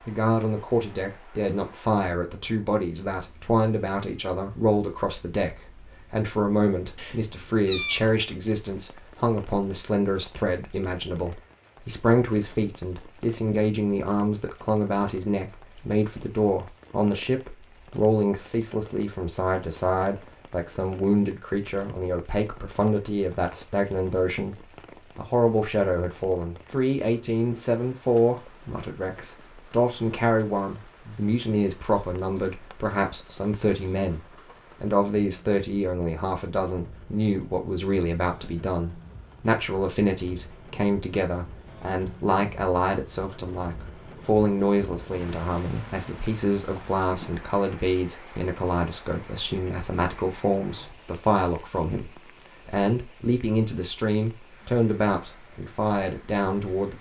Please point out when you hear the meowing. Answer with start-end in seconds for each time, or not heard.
7.0-8.2.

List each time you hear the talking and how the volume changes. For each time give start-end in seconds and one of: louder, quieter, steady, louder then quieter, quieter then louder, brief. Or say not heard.
0.1-56.9 steady.